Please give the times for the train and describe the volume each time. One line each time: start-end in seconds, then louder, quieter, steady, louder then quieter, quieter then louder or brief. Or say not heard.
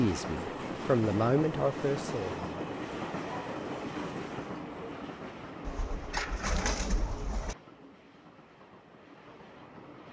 0.0-10.0 quieter.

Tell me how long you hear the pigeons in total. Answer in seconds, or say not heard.
2 s.